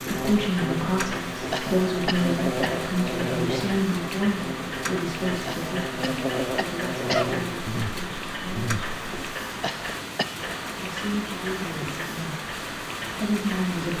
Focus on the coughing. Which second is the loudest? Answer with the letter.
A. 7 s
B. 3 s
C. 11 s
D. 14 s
A.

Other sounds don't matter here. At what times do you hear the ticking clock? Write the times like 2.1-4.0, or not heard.
0.0-13.9.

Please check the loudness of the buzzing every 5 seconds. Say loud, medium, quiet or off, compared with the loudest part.
loud, loud, off.